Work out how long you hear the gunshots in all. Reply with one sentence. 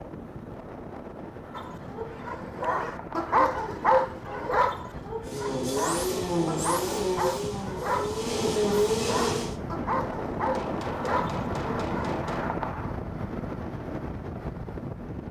The gunshots can be heard for 2 seconds in total.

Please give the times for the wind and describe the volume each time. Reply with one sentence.
The wind can be heard from 0.0 to 15.2 s, getting louder.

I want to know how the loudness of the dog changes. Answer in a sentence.
The loudness of the dog goes up, then down.